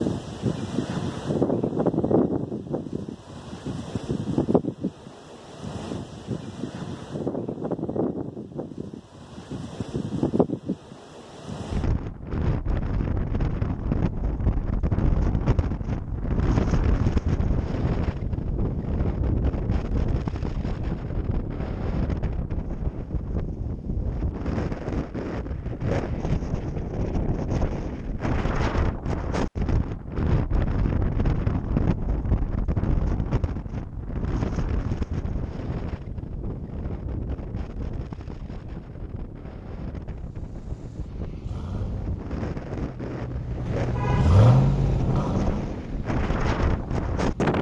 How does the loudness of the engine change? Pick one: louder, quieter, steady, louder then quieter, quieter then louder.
louder then quieter.